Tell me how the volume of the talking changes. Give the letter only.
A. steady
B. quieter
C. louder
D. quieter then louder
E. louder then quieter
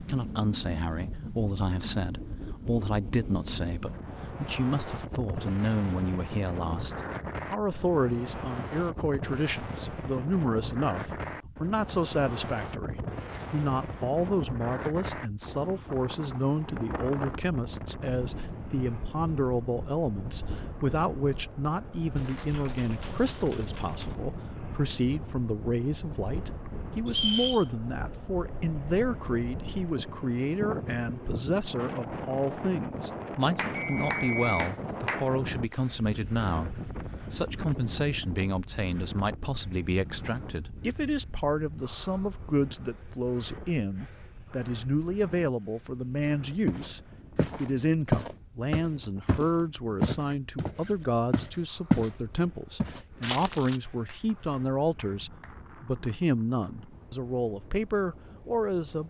A.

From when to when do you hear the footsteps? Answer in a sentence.
The footsteps can be heard from 46.6 to 52.1 s and from 52.8 to 53.8 s.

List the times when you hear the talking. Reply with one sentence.
The talking can be heard from 0.0 to 59.0 s.